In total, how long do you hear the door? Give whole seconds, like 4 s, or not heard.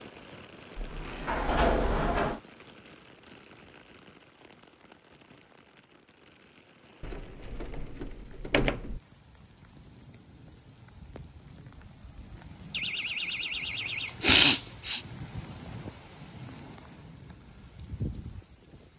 5 s.